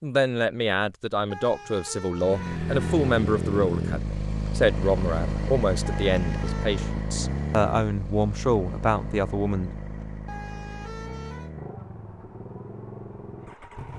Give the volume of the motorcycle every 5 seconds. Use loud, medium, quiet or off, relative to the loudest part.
loud, loud, medium.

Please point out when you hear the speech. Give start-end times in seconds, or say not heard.
0.0-9.7.